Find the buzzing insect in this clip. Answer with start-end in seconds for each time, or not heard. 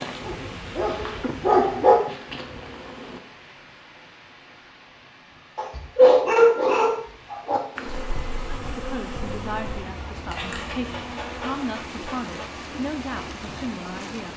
0.0-3.2, 7.8-14.3.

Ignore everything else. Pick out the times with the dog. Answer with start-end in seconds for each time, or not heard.
0.2-2.0, 5.5-7.6, 10.3-12.7.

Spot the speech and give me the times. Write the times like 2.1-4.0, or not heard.
8.6-14.3.